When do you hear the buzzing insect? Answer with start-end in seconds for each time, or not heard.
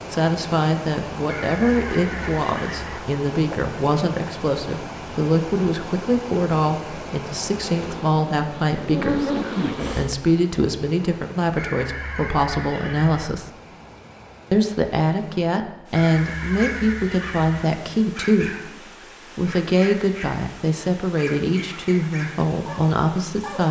7.7-10.2.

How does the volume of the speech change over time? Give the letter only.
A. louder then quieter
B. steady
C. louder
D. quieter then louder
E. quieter
B.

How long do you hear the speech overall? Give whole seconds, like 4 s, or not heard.
22 s.